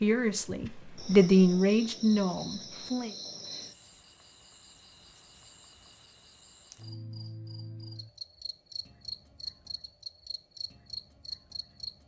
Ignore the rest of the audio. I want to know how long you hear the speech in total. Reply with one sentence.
The speech can be heard for 3 seconds in total.